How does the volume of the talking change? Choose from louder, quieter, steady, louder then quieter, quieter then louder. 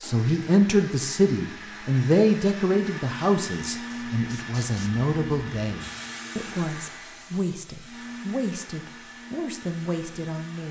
quieter.